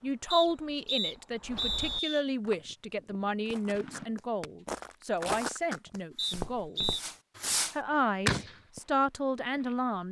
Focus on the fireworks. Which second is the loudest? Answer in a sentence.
The volume of the fireworks peaks at 8 seconds.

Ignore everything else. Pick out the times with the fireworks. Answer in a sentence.
You can hear the fireworks from 2.5 to 8.6 s.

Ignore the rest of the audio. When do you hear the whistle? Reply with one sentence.
You can hear the whistle from 0.3 to 2.2 s and from 6.2 to 7.0 s.